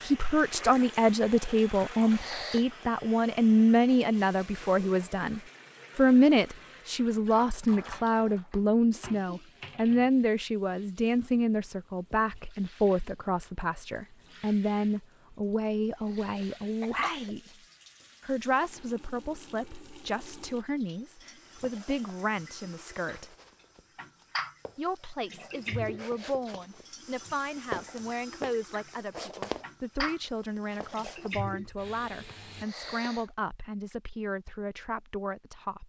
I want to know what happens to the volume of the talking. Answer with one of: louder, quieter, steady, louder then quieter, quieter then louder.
quieter.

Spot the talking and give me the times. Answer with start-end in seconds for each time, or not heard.
0.0-17.4, 18.2-23.4, 24.8-35.8.